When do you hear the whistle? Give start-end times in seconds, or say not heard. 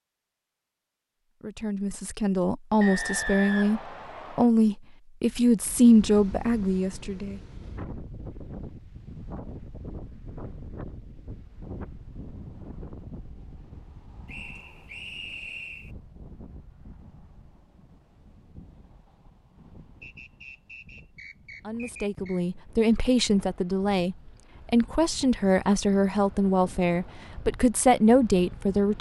2.8-4.5, 14.2-15.9, 20.0-22.4.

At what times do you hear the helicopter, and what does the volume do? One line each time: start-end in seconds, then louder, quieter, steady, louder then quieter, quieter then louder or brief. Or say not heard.
not heard.